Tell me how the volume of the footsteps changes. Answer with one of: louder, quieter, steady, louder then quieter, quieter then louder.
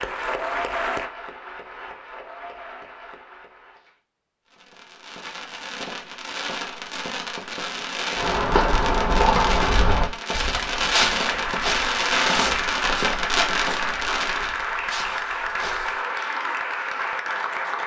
quieter.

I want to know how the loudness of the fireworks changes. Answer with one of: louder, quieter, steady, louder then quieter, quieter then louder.
louder.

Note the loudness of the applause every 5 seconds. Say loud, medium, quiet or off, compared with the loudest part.
medium, off, loud, loud.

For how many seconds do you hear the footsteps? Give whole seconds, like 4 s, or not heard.
8 s.